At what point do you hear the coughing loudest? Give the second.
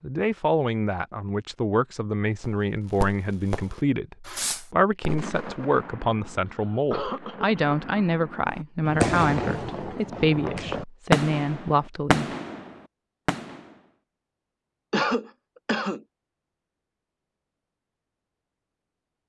15 s.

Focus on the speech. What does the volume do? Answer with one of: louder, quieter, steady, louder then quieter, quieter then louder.
steady.